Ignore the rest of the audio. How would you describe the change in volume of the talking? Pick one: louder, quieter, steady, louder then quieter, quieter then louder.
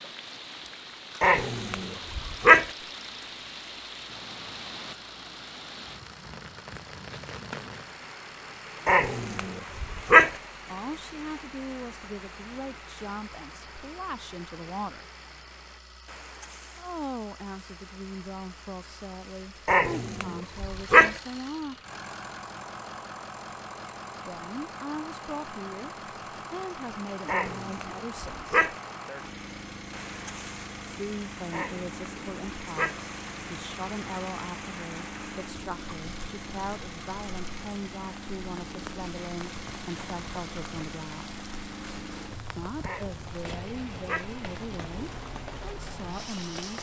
steady.